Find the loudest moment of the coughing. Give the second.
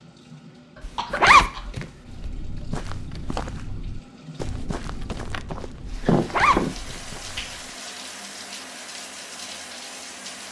6 s.